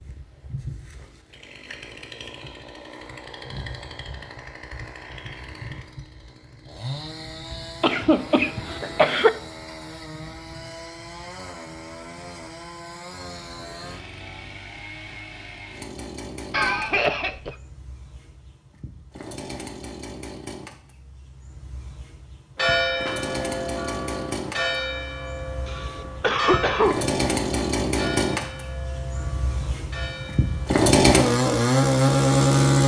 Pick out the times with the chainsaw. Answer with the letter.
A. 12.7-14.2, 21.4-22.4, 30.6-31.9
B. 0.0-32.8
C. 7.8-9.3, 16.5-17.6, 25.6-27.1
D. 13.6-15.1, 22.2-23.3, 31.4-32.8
B.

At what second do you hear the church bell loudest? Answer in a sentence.
The volume of the church bell peaks at 23 seconds.